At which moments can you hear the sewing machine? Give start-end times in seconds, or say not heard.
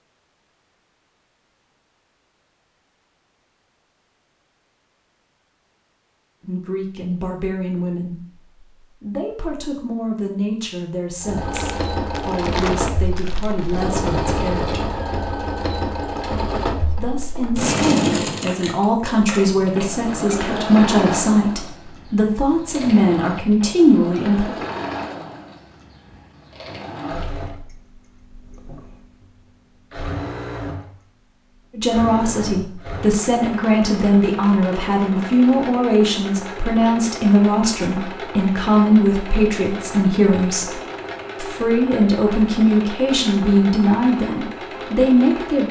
11.2-45.6.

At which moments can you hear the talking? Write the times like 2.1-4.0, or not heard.
6.4-15.0, 16.9-24.6, 31.7-45.6.